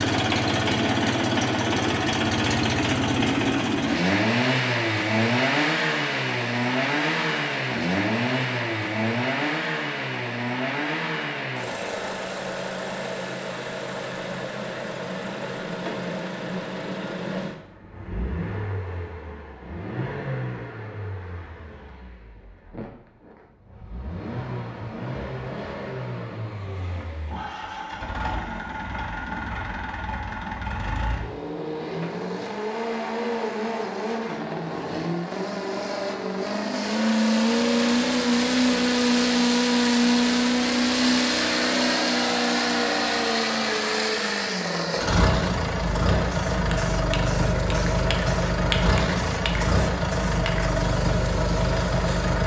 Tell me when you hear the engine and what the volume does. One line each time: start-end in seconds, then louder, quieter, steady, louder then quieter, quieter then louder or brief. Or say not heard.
0.0-52.4 quieter then louder.